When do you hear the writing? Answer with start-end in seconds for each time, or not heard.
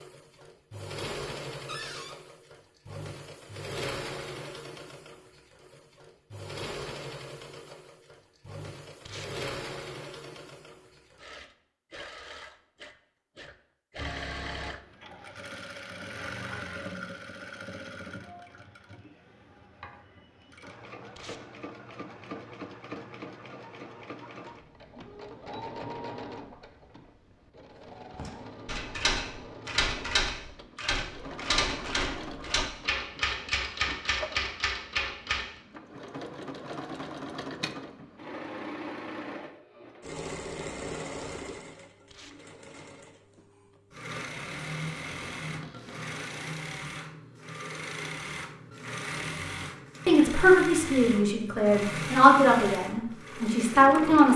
not heard.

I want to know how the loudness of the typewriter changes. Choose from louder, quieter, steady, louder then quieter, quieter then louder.
steady.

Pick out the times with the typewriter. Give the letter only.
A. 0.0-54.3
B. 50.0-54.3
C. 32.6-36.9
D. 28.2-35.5
D.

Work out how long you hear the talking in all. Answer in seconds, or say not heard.
4 s.